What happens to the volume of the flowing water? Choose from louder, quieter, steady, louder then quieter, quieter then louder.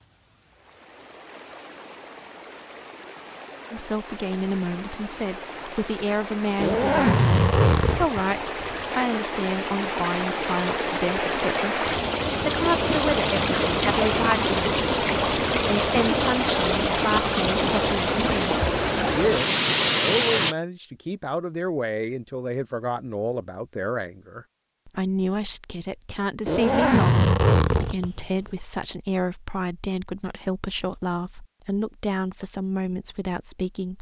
louder.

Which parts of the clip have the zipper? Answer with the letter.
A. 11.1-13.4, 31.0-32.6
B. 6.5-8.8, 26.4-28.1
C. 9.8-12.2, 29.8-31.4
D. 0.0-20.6
B.